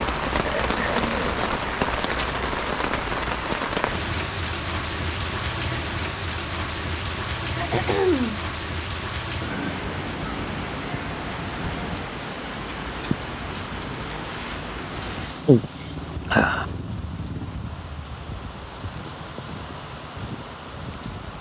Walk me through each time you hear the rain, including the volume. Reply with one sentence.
The rain can be heard from 0.0 to 21.3 s, getting quieter.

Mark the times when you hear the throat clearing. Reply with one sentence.
You can hear the throat clearing from 0.4 to 1.4 s, from 7.5 to 8.4 s and from 15.1 to 16.6 s.